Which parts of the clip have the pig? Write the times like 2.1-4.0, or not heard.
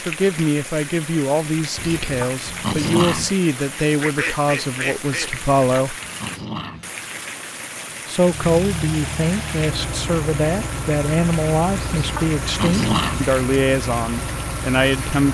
not heard.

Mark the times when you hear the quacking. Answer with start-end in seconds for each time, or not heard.
4.0-5.3.